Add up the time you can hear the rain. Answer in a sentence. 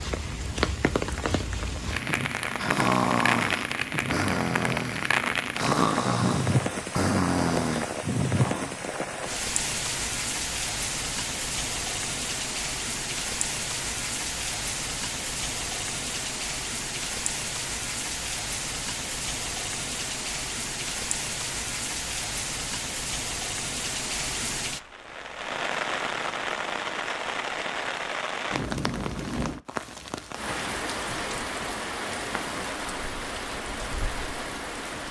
The rain can be heard for 35 seconds in total.